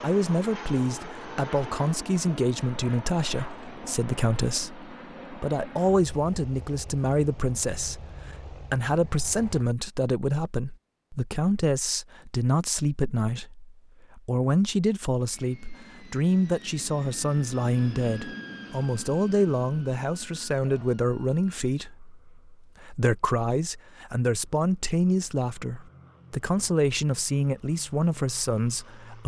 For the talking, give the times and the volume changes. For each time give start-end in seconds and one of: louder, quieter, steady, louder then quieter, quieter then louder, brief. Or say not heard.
0.0-29.2 steady.